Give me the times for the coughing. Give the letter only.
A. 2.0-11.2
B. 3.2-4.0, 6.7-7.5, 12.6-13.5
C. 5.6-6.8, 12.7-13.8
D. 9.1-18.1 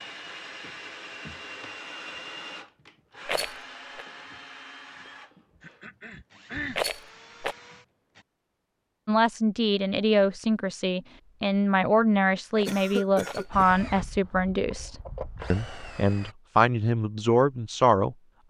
C.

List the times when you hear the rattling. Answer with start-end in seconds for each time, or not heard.
3.2-4.0, 6.7-7.5, 12.6-13.5.